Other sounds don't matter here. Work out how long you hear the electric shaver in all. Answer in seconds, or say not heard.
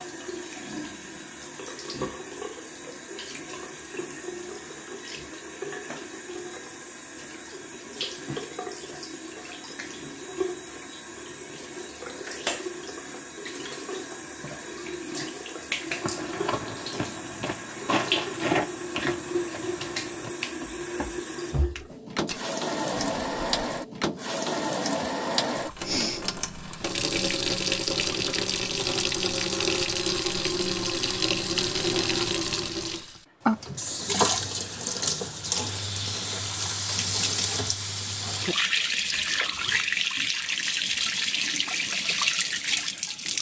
not heard.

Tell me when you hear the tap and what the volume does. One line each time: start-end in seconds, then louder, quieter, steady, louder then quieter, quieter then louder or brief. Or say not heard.
0.0-43.3 louder.